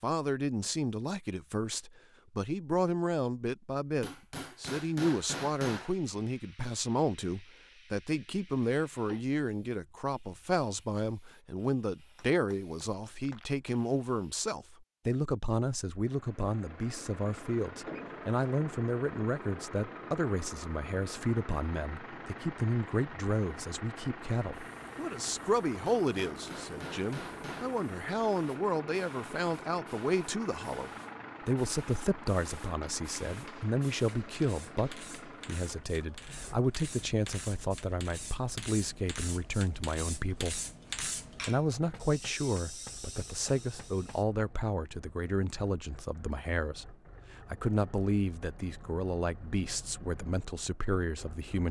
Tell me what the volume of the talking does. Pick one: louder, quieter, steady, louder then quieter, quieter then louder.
steady.